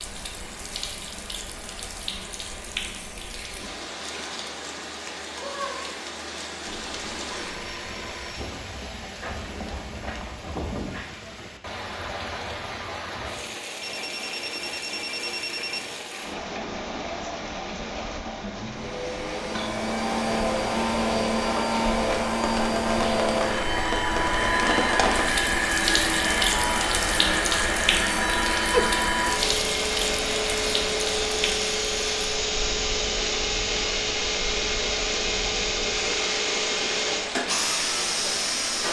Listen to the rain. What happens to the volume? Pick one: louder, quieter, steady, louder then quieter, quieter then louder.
louder then quieter.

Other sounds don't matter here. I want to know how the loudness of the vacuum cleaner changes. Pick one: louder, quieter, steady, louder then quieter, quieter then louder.
steady.